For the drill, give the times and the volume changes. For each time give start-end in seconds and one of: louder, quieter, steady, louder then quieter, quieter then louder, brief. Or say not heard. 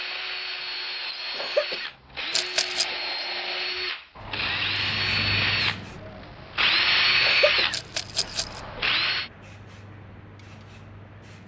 0.0-9.3 louder.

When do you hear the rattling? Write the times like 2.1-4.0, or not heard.
2.3-2.9, 7.7-8.6.